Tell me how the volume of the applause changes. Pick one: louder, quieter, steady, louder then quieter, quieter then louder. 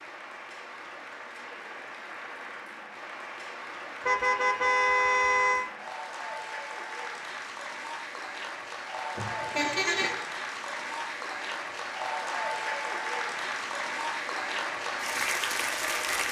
louder.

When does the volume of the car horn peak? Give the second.
5 s.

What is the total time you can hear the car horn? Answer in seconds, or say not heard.
3 s.